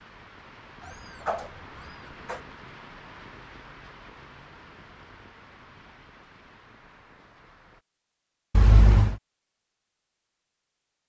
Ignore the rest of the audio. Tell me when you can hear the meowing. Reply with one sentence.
The meowing can be heard from 0.8 to 2.4 s and from 8.5 to 9.2 s.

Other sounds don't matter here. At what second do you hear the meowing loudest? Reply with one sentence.
The volume of the meowing peaks at 9 seconds.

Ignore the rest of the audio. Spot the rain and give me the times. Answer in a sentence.
You can hear the rain from 0.0 to 7.8 s.